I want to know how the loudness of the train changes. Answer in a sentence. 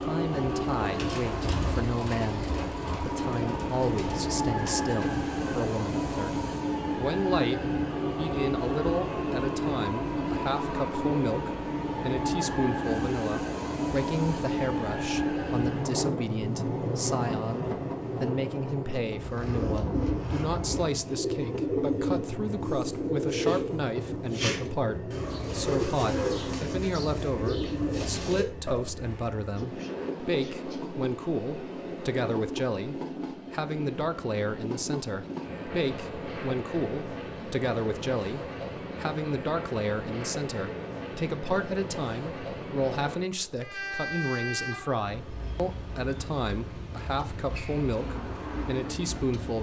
The volume of the train goes down.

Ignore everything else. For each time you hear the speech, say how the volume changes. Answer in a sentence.
The speech can be heard from 0.0 to 49.5 s, at a steady volume.